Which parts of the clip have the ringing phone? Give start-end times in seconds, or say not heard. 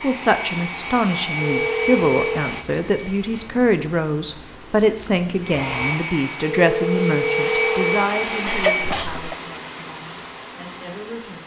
1.4-2.5, 6.5-8.1.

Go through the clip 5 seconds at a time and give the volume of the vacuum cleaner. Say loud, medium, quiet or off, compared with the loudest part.
loud, loud, off.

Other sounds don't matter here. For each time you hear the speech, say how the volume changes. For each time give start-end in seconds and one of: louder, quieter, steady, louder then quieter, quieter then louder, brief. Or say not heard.
0.0-11.4 quieter.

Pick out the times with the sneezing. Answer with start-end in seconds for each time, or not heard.
8.4-9.3.